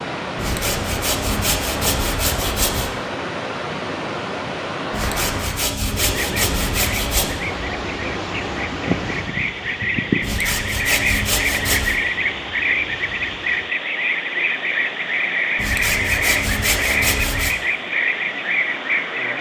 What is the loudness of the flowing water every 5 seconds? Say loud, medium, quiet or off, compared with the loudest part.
loud, loud, medium, medium.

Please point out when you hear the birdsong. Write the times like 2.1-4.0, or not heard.
6.2-19.3.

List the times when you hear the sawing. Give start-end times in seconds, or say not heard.
0.3-2.9, 4.9-7.3, 10.2-12.0, 15.6-17.6.